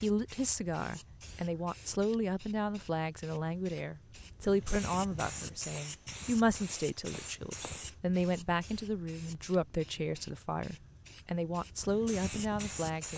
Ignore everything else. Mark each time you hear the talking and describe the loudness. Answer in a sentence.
The talking can be heard from 0.0 to 13.1 s, at a steady volume.